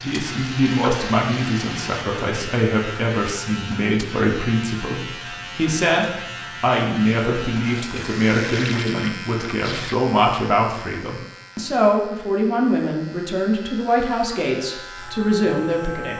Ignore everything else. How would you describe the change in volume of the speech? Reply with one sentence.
The volume of the speech stays about the same.